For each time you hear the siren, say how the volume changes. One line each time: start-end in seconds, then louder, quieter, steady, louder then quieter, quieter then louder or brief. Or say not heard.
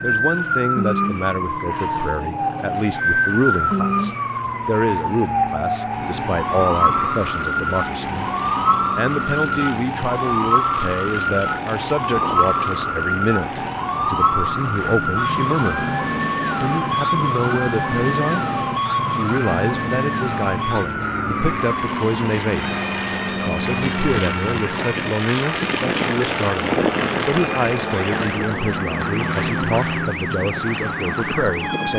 0.0-31.9 quieter.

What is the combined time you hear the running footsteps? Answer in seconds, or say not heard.
not heard.